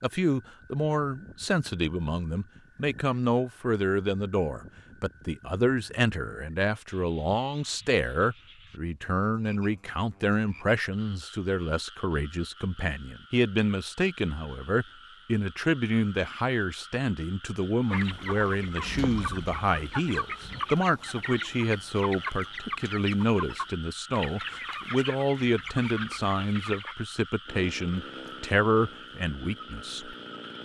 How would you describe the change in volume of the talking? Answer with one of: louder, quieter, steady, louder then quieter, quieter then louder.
steady.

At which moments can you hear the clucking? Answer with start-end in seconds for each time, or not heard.
17.9-26.9.